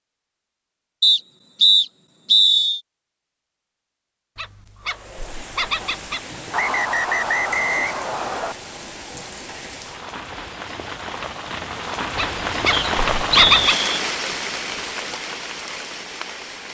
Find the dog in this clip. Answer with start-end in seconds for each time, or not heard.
4.3-6.2, 12.2-13.8.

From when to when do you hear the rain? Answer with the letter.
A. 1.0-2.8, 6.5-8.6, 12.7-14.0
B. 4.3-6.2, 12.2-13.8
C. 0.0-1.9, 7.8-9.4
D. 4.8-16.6
D.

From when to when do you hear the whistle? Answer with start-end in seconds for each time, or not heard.
1.0-2.8, 6.5-8.6, 12.7-14.0.